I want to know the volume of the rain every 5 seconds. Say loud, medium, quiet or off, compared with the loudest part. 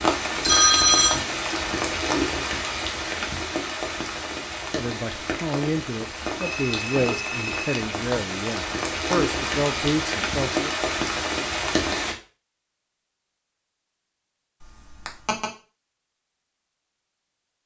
loud, loud, loud, off.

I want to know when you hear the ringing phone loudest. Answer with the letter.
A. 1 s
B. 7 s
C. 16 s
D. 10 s
A.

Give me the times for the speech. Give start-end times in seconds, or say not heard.
4.7-10.7.